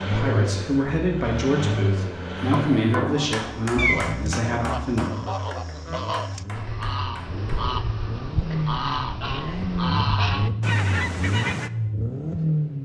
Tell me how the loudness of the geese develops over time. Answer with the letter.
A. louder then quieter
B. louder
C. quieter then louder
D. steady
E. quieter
B.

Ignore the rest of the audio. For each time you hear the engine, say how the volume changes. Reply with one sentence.
The engine can be heard from 0.0 to 12.8 s, getting quieter then louder.